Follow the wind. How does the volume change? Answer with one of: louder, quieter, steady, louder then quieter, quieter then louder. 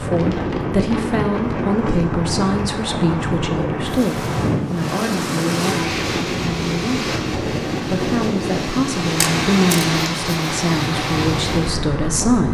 steady.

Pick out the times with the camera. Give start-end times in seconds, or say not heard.
9.2-9.8.